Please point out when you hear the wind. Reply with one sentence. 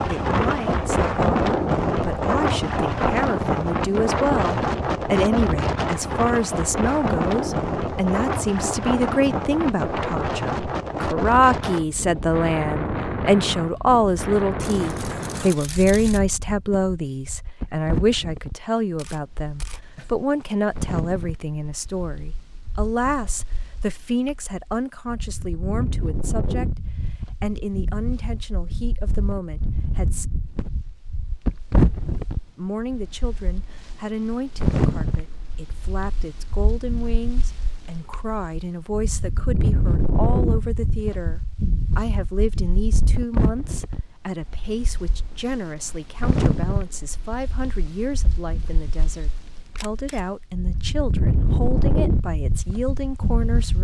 You can hear the wind from 0.0 to 53.7 s.